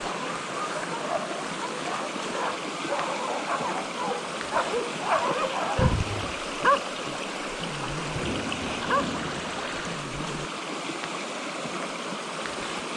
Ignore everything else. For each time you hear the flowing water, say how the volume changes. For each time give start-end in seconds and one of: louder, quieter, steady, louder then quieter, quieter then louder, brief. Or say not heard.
0.0-12.9 steady.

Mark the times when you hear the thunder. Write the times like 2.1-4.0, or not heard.
8.1-9.9.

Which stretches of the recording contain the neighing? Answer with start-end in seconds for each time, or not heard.
5.8-6.3.